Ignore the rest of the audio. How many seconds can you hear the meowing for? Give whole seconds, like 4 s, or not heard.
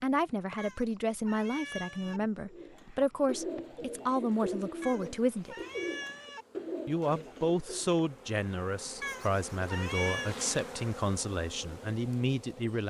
5 s.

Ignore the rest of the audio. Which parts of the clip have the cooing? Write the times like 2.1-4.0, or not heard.
2.5-8.0.